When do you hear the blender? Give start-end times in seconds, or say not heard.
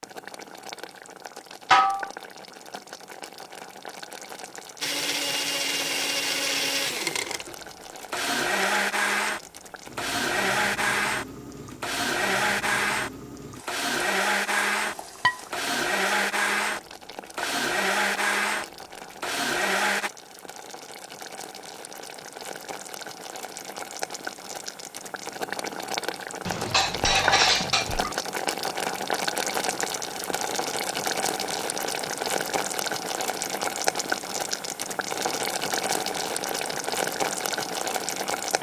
4.8-20.1.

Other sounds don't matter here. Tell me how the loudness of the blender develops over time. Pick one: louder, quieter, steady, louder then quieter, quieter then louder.
steady.